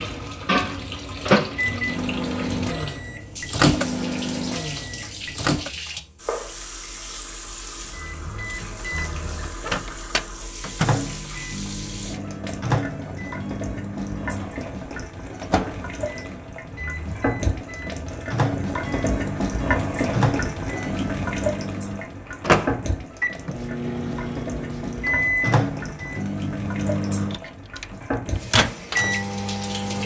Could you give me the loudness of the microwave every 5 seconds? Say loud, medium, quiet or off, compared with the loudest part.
loud, medium, medium, medium, loud, loud.